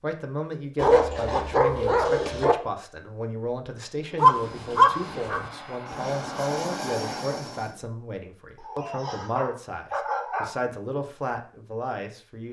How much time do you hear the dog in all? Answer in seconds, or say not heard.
5 s.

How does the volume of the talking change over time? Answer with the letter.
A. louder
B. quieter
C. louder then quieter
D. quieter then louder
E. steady
E.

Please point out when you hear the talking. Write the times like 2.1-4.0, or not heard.
0.0-12.4.